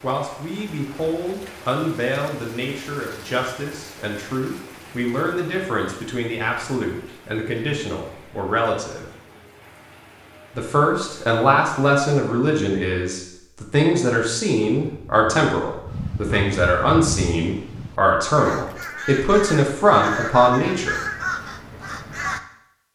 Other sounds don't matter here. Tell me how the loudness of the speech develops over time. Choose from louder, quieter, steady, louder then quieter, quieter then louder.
louder.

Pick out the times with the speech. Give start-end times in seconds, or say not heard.
0.0-9.1, 10.6-21.0.